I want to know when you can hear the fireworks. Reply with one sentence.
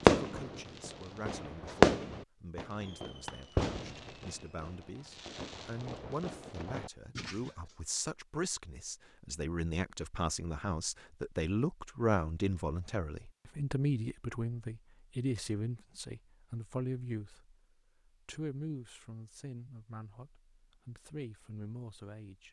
The fireworks can be heard from 0.0 to 7.5 s.